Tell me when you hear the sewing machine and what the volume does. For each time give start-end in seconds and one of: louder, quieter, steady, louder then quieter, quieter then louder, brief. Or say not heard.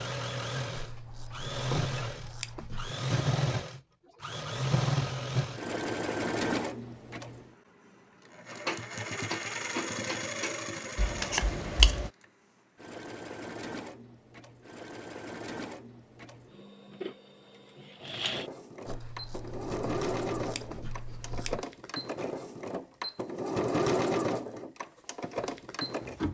0.0-26.3 quieter then louder.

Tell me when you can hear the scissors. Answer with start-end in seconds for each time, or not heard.
0.8-2.9, 10.9-12.1, 18.9-21.6.